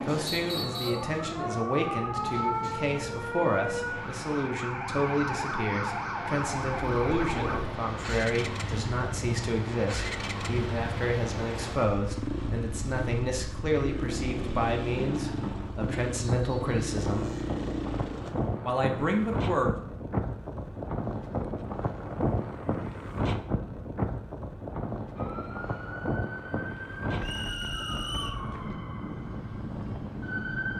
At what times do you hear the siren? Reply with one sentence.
You can hear the siren from 0.0 to 7.6 s and from 25.1 to 30.7 s.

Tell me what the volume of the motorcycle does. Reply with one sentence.
The loudness of the motorcycle stays about the same.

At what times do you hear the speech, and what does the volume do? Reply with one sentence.
You can hear the speech from 0.0 to 17.3 s, at a steady volume; and briefly from 18.6 to 19.8 s.